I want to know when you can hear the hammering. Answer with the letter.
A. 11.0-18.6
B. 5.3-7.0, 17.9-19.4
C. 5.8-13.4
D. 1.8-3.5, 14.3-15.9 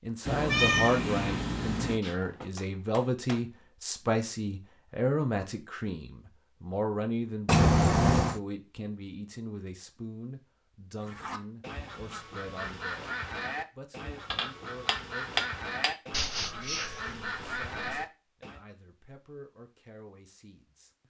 D.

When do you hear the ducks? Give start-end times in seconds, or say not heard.
11.0-18.6.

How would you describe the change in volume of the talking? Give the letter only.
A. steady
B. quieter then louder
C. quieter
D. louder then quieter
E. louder
C.